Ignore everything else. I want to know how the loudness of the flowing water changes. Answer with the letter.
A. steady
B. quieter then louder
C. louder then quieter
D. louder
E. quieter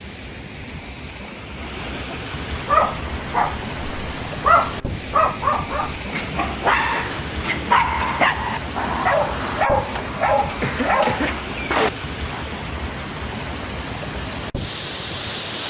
A.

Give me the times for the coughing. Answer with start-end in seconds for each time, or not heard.
10.6-11.3.